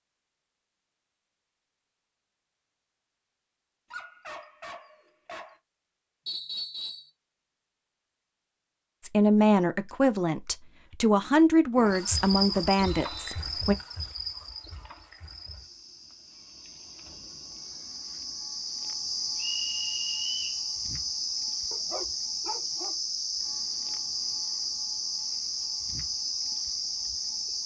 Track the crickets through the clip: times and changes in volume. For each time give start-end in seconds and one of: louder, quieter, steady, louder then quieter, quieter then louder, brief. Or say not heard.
11.8-27.6 quieter then louder.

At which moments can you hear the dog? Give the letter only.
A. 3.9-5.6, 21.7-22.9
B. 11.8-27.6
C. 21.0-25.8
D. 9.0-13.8
A.